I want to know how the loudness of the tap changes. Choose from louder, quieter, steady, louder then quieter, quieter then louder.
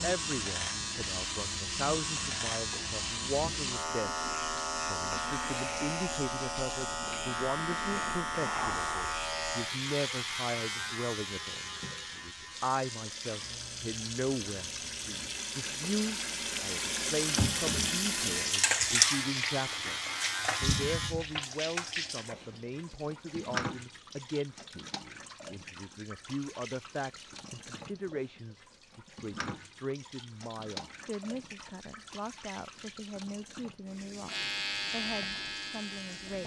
louder then quieter.